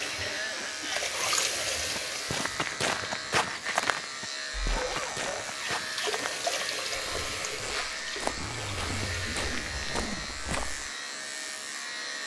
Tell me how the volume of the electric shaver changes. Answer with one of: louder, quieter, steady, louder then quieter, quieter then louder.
steady.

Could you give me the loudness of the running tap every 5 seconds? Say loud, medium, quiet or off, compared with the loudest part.
loud, loud, off.